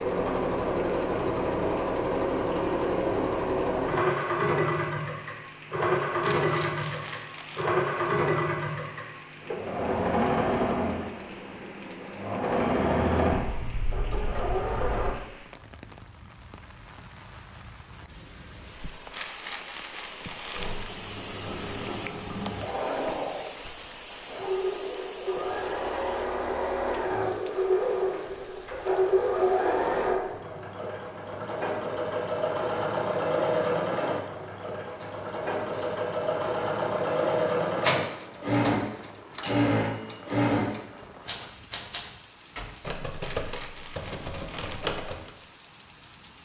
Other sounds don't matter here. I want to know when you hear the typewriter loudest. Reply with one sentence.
The loudest moment of the typewriter is at 38 seconds.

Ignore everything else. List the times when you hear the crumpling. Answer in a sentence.
The crumpling can be heard from 6.2 to 7.8 s, from 19.1 to 21.1 s and from 43.2 to 44.9 s.